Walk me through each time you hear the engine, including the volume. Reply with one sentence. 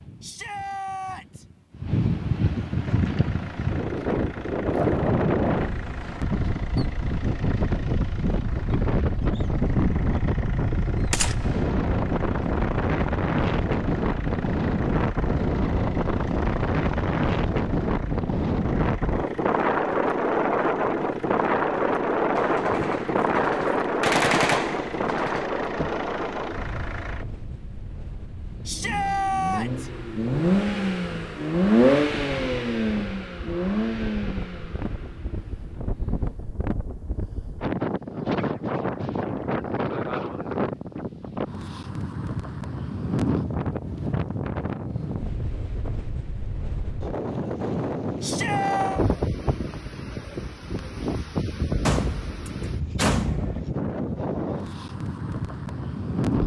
You can hear the engine from 2.7 to 36.4 s, getting louder.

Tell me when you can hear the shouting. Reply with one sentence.
You can hear the shouting from 0.2 to 1.4 s, from 28.6 to 29.9 s and from 48.2 to 49.0 s.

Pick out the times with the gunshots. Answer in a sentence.
The gunshots can be heard from 11.1 to 11.7 s, from 22.4 to 25.5 s and from 51.9 to 53.6 s.